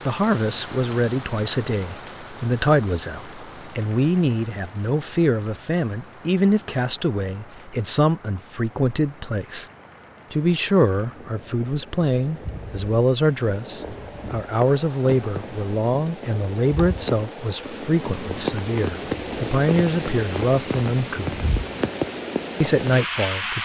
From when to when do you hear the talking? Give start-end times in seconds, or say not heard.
0.1-9.7, 10.3-21.4, 22.6-23.6.